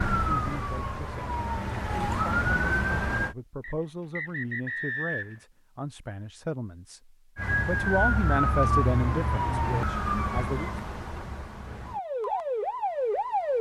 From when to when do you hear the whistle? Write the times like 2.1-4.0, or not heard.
3.6-5.5.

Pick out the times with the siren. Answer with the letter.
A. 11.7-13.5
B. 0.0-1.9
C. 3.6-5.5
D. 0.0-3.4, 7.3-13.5
D.